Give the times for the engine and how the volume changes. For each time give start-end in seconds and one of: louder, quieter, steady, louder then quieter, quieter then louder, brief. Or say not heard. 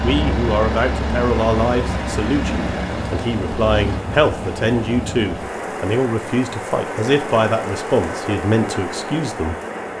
0.0-4.0 quieter.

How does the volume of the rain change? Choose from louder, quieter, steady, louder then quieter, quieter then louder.
steady.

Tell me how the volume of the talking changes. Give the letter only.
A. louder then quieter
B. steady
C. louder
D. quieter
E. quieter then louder
B.